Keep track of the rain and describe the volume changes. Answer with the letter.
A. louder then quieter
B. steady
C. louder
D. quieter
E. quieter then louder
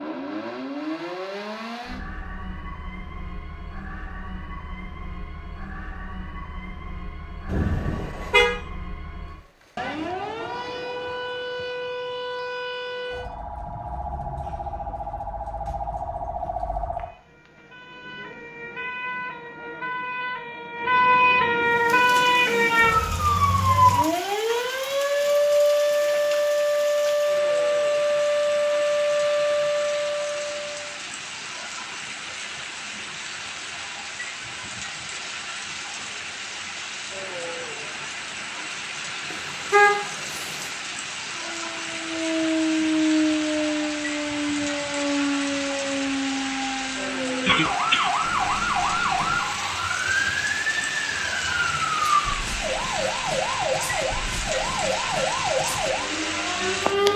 C.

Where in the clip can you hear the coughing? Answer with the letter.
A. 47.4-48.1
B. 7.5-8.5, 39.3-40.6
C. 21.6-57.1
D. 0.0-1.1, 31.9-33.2
A.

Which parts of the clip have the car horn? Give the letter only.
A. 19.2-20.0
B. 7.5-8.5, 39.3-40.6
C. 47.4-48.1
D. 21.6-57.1
B.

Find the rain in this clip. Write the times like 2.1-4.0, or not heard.
21.6-57.1.